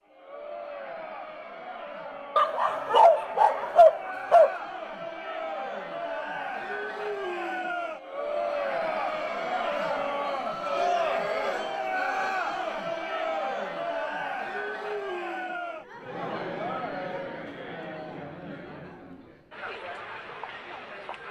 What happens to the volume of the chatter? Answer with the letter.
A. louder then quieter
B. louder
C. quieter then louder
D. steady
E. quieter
A.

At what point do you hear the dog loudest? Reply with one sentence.
The loudest moment of the dog is at 4 seconds.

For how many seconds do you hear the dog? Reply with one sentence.
The dog can be heard for 2 seconds in total.